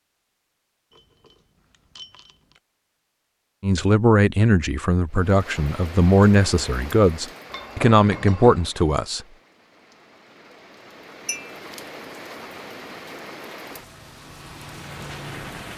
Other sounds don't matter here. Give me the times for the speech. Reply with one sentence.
The speech can be heard from 3.6 to 9.2 s.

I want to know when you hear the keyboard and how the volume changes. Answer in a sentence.
You can't hear the keyboard here.